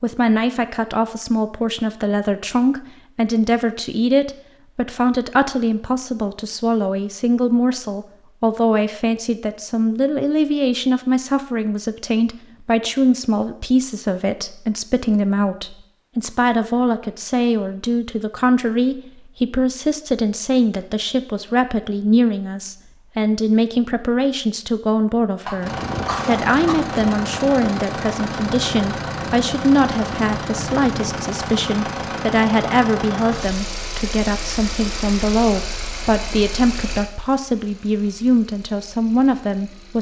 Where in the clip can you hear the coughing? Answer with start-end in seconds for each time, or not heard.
25.4-26.8.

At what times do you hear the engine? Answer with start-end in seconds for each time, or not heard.
25.6-39.9.